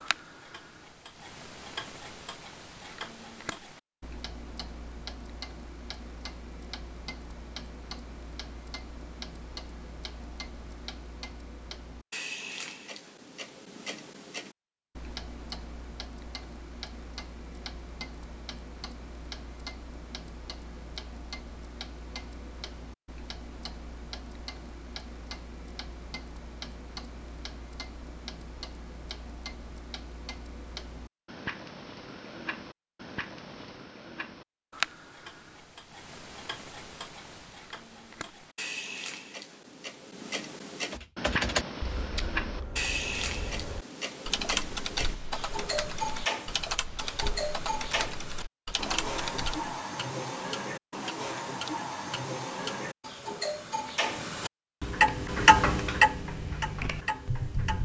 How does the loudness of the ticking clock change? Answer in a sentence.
The loudness of the ticking clock goes up.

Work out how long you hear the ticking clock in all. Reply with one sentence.
You can hear the ticking clock for 58 seconds altogether.